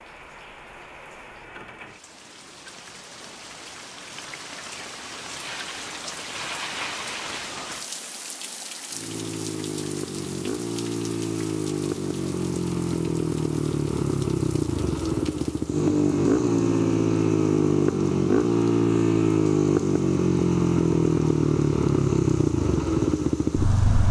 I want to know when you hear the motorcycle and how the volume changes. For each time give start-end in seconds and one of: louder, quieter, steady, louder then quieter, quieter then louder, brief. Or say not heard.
8.9-24.0 louder.